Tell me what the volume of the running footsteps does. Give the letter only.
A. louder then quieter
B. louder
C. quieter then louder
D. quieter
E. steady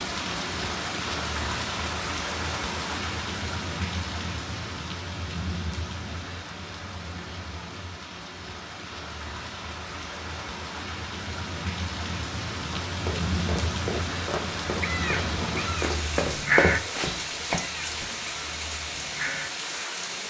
A.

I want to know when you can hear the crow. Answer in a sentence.
The crow can be heard from 14.8 to 19.9 s.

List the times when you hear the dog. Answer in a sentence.
You can't hear the dog here.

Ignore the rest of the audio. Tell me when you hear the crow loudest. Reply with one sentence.
The loudest moment of the crow is at 17 seconds.